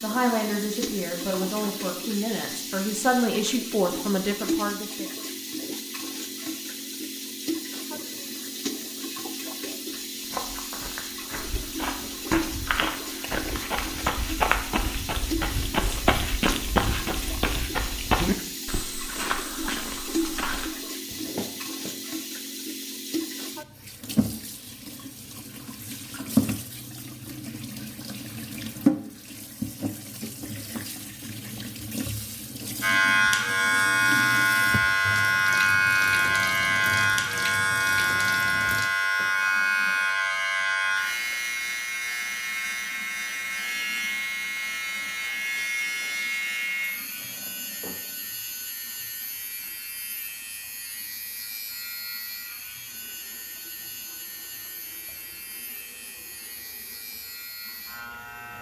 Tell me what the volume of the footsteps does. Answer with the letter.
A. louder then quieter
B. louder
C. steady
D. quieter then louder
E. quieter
A.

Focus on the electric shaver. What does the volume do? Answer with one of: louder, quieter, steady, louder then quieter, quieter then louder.
quieter.